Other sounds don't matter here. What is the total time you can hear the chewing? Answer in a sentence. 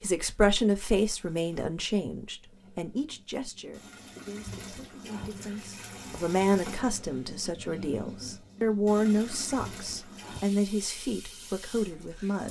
The chewing can't be heard in this clip.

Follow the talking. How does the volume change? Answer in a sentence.
The loudness of the talking goes down, then up.